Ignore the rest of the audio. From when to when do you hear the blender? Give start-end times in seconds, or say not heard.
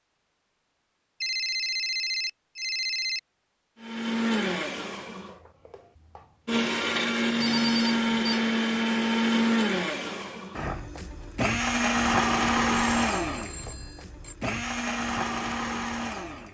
3.8-16.5.